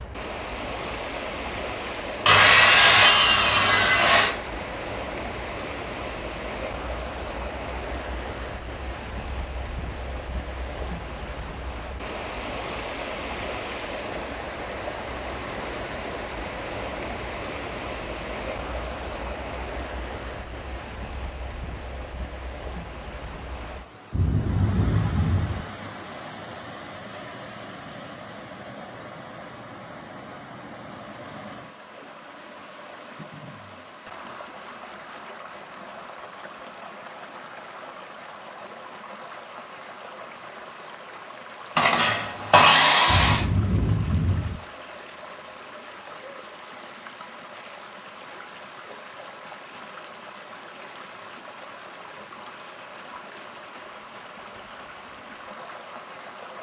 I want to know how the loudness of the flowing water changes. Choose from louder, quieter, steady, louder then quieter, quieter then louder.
quieter.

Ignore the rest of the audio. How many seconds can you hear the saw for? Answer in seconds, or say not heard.
4 s.